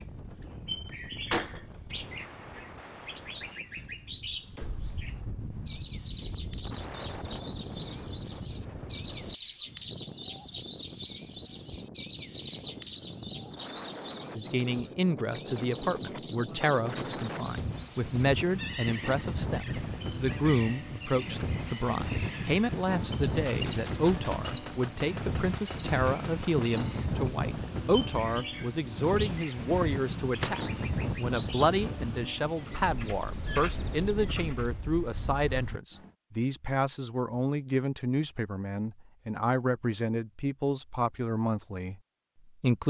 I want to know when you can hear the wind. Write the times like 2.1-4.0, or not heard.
0.0-36.1.